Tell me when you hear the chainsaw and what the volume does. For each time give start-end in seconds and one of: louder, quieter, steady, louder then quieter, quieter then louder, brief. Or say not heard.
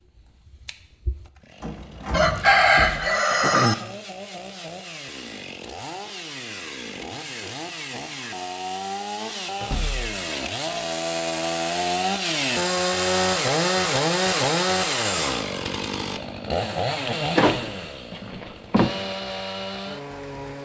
0.0-20.6 louder then quieter.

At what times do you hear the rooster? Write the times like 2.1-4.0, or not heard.
2.1-3.8.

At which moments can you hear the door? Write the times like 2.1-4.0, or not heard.
1.6-3.0, 9.6-10.1, 17.1-18.9.